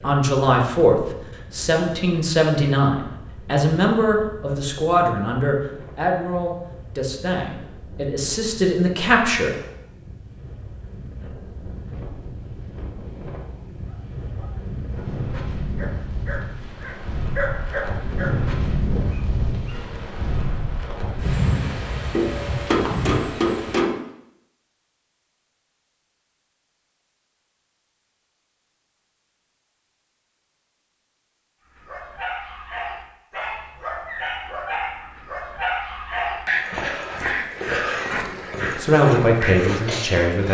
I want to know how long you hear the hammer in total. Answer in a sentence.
The hammer can be heard for 2 seconds in total.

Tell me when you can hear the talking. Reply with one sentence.
You can hear the talking from 0.0 to 9.5 s and from 38.8 to 40.5 s.